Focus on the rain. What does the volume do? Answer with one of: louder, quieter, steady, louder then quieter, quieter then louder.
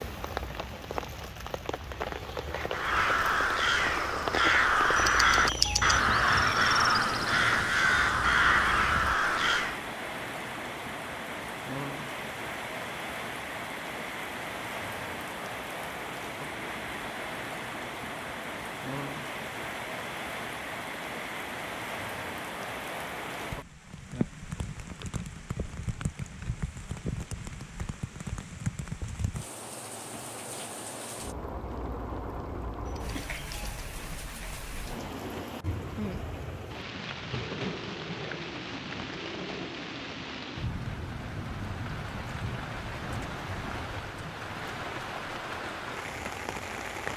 steady.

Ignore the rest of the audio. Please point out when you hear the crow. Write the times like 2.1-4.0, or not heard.
2.7-9.8.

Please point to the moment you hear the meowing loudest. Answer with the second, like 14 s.
6 s.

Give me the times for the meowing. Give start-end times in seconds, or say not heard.
5.0-6.0, 32.9-33.8.